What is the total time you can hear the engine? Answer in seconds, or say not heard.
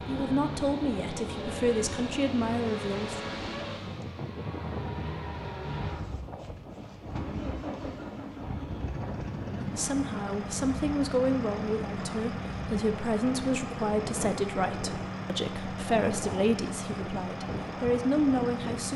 19 s.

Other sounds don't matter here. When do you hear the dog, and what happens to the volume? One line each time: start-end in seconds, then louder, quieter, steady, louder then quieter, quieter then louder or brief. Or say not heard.
not heard.